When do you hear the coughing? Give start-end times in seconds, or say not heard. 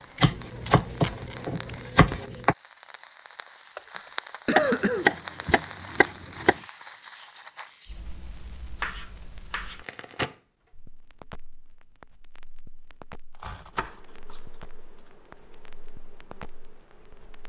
3.8-5.6.